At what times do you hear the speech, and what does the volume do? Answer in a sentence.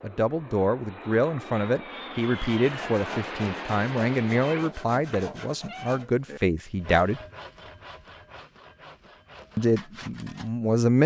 You can hear the speech from 0.0 to 7.2 s, at a steady volume; and briefly from 9.6 to 11.0 s.